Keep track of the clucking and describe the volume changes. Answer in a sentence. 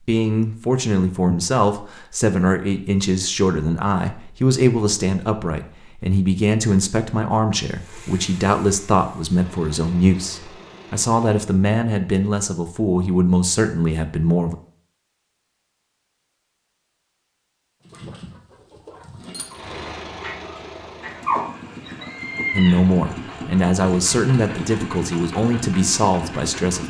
The volume of the clucking goes up.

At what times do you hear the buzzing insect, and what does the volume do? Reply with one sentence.
The buzzing insect can't be heard in this clip.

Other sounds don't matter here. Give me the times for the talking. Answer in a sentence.
The talking can be heard from 0.0 to 14.6 s and from 22.5 to 26.8 s.